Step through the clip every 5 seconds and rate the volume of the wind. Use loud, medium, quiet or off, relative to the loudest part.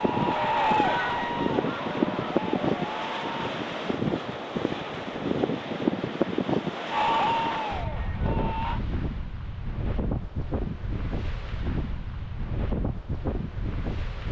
loud, loud, medium.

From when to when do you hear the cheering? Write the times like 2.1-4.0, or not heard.
0.0-3.5, 6.8-8.8.